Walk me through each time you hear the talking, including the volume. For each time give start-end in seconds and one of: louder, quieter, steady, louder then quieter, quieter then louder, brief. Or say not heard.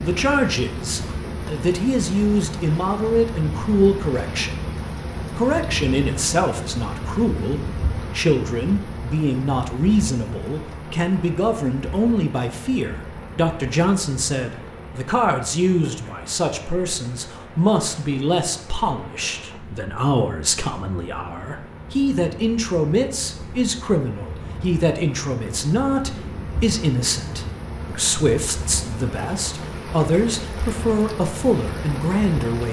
0.0-32.6 steady.